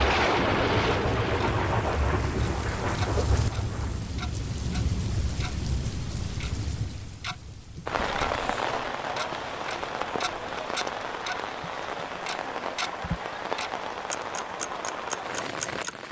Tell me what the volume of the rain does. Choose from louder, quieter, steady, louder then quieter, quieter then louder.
quieter.